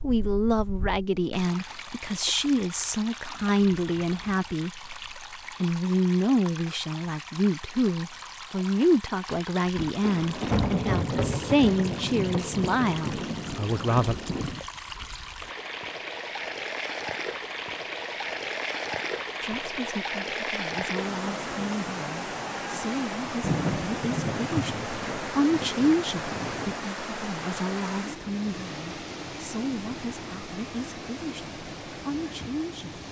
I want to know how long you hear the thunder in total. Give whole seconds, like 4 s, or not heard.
8 s.